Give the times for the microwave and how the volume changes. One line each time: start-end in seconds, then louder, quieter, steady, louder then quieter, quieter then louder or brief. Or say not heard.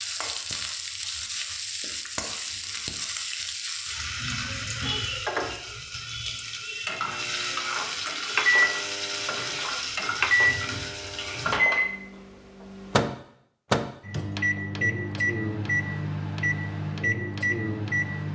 7.0-18.2 steady.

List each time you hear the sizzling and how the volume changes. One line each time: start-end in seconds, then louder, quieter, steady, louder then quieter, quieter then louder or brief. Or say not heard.
0.0-11.6 steady.